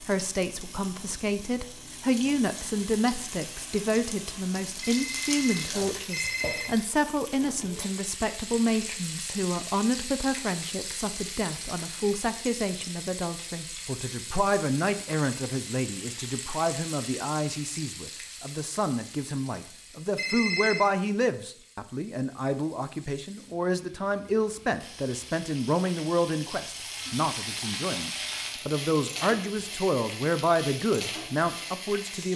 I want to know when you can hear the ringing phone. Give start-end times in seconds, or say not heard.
4.8-6.8, 20.1-20.9.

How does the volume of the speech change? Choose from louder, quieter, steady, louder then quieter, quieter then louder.
steady.